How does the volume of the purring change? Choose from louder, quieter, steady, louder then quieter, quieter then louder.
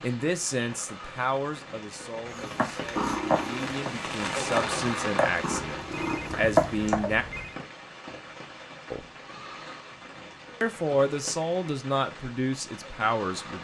quieter then louder.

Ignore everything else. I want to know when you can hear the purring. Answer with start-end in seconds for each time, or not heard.
2.5-7.0.